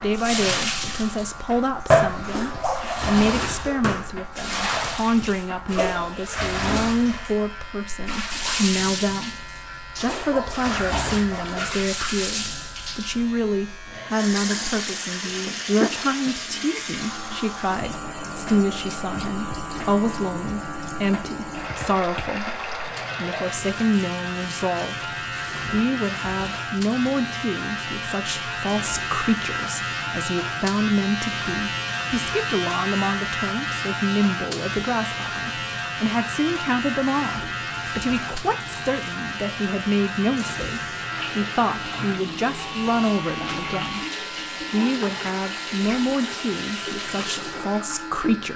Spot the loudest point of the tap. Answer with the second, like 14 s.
2 s.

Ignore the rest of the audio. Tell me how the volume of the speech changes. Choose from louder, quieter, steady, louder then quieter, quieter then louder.
steady.